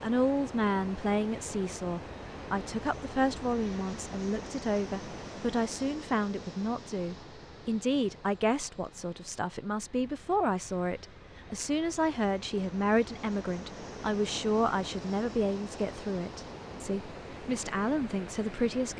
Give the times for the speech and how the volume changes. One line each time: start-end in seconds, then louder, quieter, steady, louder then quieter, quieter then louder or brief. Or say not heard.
0.0-18.9 steady.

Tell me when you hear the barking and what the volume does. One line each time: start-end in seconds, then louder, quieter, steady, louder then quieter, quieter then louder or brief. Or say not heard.
not heard.